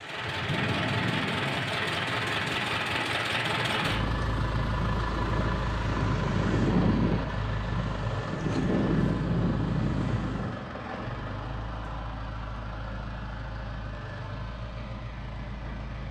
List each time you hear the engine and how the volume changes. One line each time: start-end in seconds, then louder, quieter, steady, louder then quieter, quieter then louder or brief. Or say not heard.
0.0-16.0 quieter.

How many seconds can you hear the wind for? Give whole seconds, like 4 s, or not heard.
11 s.